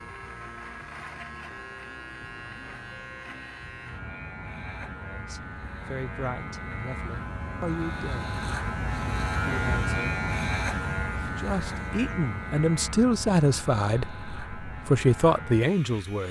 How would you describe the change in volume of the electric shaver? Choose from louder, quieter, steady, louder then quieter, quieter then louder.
louder then quieter.